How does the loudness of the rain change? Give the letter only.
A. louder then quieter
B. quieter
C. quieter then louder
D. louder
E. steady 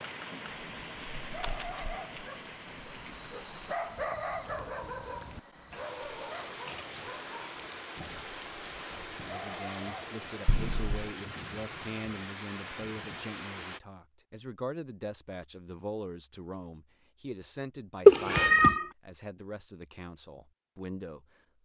C.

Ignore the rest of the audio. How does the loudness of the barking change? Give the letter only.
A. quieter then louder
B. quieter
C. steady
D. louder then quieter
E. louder
D.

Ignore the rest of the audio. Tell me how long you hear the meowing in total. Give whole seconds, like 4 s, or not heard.
2 s.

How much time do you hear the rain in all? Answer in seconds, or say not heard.
14 s.